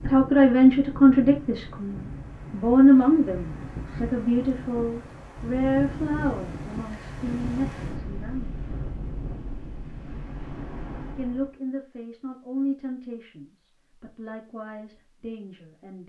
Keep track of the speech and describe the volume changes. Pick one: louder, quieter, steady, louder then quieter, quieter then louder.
quieter.